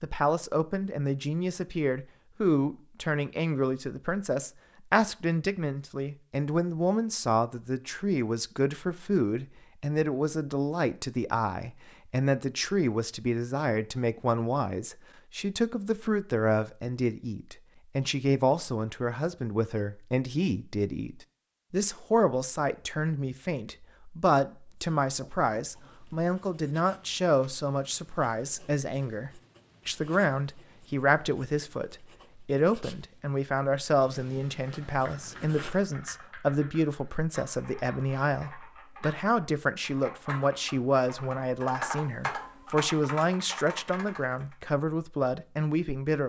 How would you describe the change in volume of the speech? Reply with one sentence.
The volume of the speech stays about the same.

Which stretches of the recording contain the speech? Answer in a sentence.
You can hear the speech from 0.0 to 46.2 s.